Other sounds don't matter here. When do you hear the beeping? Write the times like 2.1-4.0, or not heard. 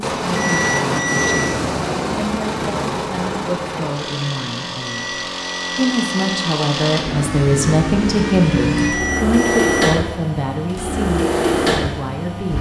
0.3-1.6, 4.8-6.3, 8.8-10.0.